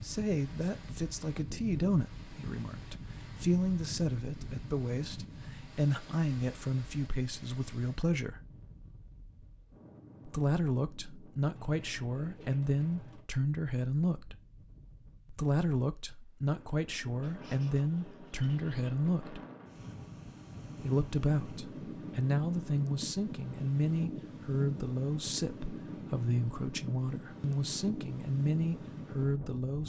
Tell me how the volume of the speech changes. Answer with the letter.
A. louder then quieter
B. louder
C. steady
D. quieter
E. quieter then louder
C.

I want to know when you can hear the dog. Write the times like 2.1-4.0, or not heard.
not heard.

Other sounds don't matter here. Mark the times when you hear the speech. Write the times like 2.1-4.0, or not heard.
0.0-8.4, 10.2-14.3, 15.3-19.4, 20.8-29.8.